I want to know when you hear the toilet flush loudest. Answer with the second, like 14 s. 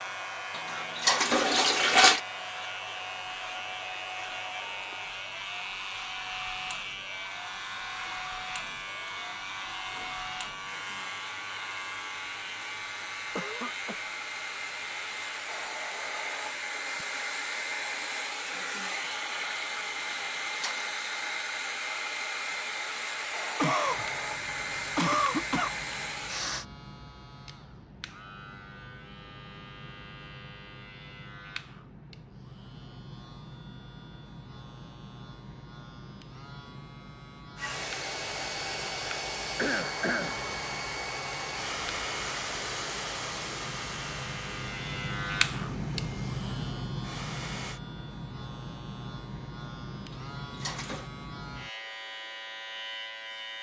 2 s.